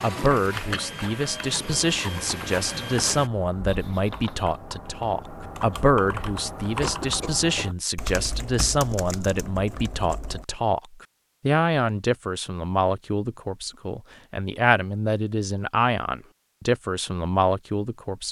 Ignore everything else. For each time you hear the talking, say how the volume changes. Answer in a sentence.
The talking can be heard from 0.0 to 18.2 s, at a steady volume.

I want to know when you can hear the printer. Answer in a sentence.
The printer can be heard from 0.0 to 3.3 s.